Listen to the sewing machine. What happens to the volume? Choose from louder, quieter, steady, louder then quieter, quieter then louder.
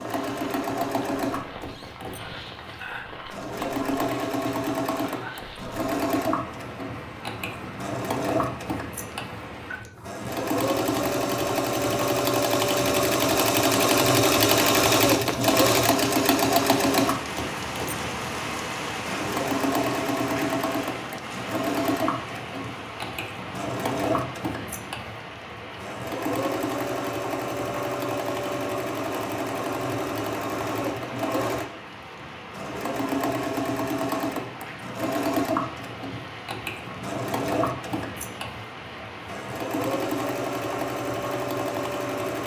louder then quieter.